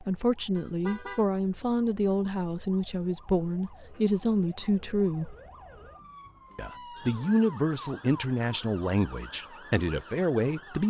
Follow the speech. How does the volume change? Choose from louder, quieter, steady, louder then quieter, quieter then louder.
steady.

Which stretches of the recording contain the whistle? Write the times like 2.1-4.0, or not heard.
not heard.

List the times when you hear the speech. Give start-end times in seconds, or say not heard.
0.0-5.3, 6.5-10.8.